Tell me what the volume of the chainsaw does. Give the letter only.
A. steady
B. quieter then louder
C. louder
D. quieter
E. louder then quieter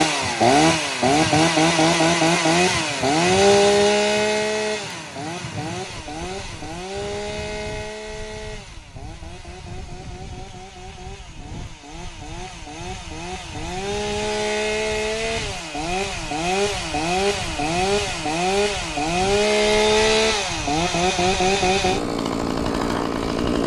B.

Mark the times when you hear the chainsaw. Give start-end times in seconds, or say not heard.
0.0-23.6.